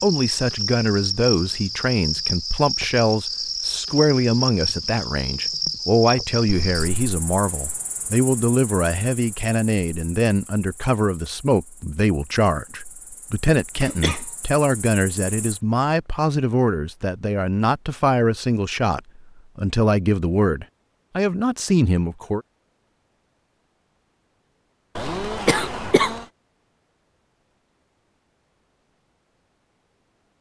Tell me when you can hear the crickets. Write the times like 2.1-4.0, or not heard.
0.0-15.6.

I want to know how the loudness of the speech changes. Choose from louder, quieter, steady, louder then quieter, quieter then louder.
steady.